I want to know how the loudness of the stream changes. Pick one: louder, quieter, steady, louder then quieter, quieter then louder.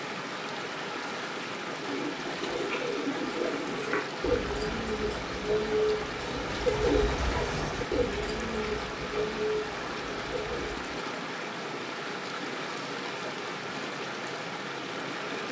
steady.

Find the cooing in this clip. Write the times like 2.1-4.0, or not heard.
1.7-10.8.